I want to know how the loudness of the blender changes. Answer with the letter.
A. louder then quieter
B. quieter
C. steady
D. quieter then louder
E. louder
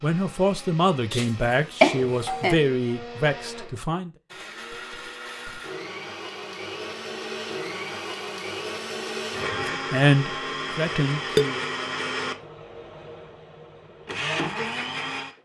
E.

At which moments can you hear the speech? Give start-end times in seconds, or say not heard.
0.0-4.1, 9.7-11.7.